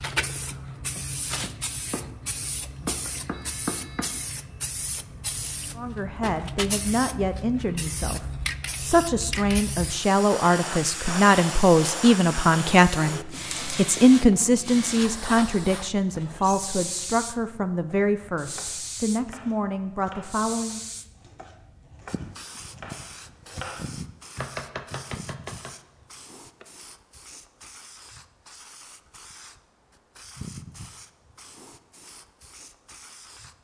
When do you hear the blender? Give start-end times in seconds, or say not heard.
not heard.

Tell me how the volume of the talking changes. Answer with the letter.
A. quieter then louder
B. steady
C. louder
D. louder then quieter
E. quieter
D.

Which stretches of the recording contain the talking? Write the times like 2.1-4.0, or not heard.
5.8-20.8.